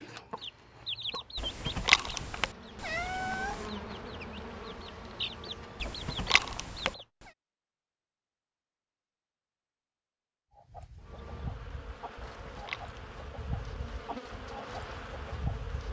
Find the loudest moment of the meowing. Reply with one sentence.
The loudest moment of the meowing is at 2 seconds.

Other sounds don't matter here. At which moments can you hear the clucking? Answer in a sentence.
The clucking can be heard from 0.0 to 7.0 s and from 10.5 to 15.8 s.